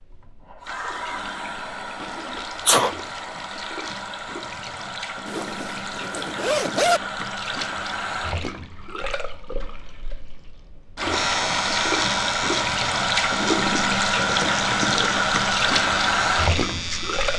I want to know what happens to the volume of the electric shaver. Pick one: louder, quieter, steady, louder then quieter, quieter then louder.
steady.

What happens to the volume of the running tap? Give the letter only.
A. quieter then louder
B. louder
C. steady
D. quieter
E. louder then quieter
B.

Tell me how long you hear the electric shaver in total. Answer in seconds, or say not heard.
6 s.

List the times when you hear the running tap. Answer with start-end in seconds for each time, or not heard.
0.0-17.3.